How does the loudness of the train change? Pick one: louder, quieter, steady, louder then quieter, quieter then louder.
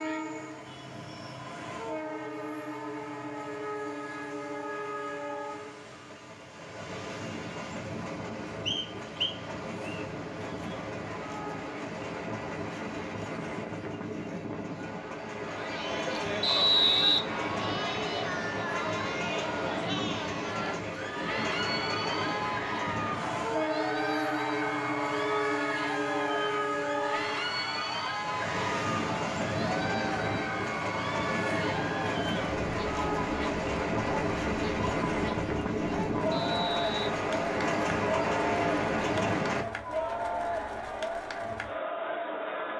louder.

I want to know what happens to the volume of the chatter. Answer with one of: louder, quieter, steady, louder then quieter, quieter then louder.
steady.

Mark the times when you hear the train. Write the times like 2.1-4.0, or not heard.
0.0-39.6.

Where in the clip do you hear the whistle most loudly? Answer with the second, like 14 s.
17 s.